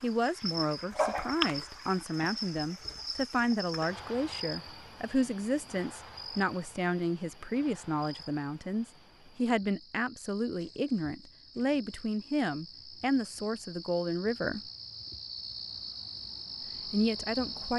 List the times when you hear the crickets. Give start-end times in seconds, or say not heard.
0.0-17.7.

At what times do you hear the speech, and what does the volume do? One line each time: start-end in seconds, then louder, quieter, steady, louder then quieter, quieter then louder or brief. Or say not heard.
0.0-14.6 steady
16.9-17.7 brief.